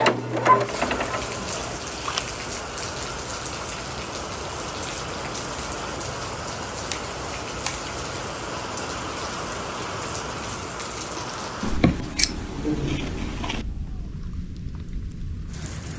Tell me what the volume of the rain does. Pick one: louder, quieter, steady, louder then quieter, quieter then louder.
quieter.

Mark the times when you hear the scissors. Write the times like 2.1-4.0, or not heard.
1.4-2.3, 6.7-8.0, 11.6-13.7.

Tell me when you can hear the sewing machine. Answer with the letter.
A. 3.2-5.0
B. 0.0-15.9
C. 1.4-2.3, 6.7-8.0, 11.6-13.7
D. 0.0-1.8
D.